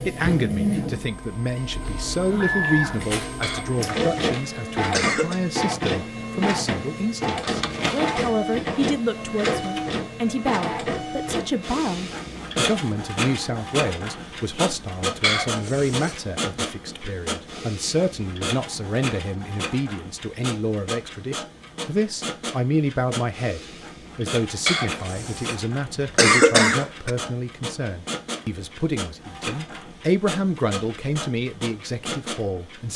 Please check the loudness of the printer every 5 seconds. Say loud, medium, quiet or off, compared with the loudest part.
loud, loud, loud, medium, medium, medium, medium.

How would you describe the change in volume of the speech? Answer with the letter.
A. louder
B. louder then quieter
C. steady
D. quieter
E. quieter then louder
C.